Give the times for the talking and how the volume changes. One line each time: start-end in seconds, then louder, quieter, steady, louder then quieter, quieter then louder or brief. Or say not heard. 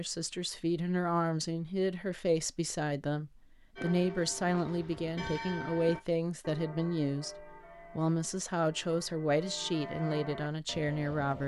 0.0-11.4 steady.